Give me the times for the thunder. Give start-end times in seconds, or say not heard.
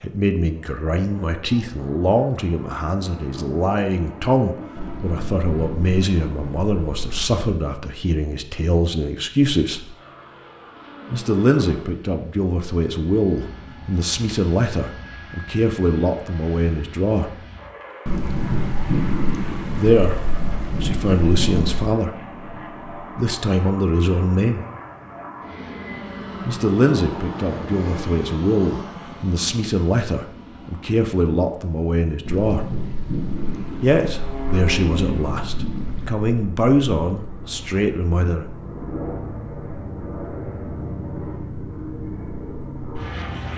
4.8-7.4, 18.1-21.9, 32.2-36.1.